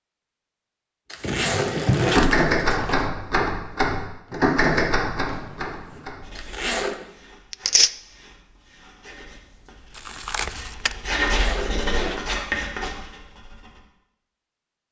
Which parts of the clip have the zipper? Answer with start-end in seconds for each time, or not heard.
1.1-3.1, 6.3-7.0, 11.2-12.2.